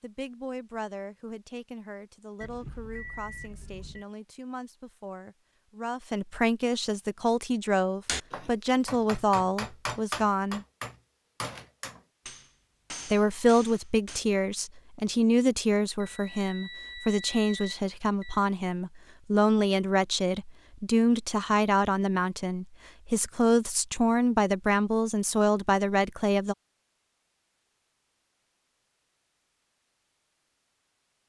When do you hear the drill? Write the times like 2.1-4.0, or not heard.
not heard.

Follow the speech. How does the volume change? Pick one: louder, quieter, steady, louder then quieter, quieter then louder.
louder.